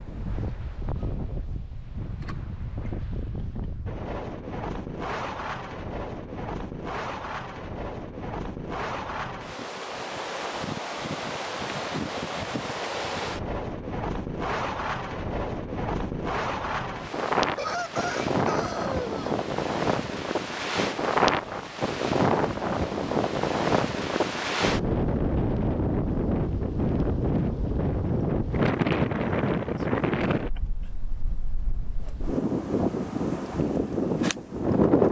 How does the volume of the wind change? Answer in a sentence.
The volume of the wind goes up.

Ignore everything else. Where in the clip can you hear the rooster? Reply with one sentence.
The rooster can be heard from 17.6 to 19.2 s.